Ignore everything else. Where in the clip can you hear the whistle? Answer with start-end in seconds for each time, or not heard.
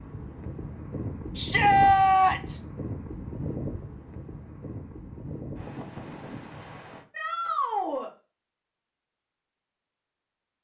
not heard.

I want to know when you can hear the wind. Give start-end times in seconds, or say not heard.
0.0-7.0.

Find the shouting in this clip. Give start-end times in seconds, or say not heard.
1.4-2.5, 7.1-8.1.